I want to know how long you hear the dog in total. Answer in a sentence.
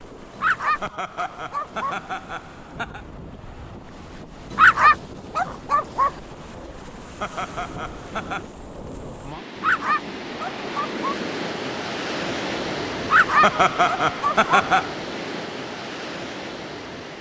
The dog can be heard for 6 seconds in total.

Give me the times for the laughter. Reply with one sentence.
The laughter can be heard from 0.8 to 3.0 s, from 7.2 to 8.4 s and from 13.4 to 14.9 s.